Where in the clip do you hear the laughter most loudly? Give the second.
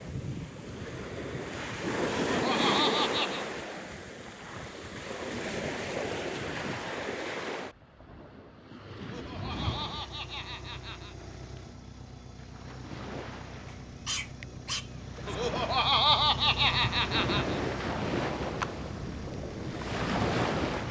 16 s.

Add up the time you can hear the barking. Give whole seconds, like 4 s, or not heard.
2 s.